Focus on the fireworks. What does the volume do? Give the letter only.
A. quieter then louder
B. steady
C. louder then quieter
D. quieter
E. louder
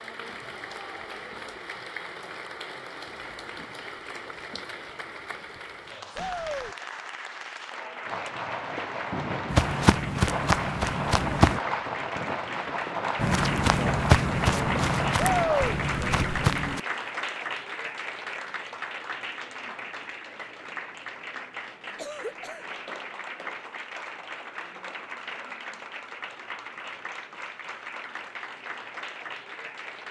B.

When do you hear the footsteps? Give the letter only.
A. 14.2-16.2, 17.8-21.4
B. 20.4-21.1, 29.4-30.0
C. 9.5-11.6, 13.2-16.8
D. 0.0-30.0
C.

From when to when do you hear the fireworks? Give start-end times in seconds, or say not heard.
8.0-15.9.